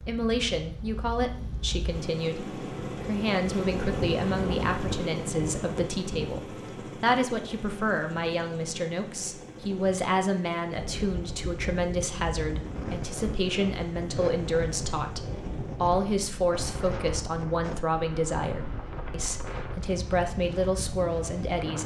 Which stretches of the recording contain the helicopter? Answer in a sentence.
The helicopter can be heard from 0.0 to 16.0 s.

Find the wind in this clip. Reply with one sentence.
The wind can be heard from 10.8 to 21.8 s.